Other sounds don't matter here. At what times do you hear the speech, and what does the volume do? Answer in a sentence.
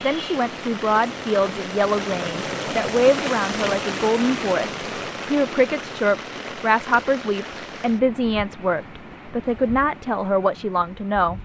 You can hear the speech from 0.0 to 11.4 s, at a steady volume.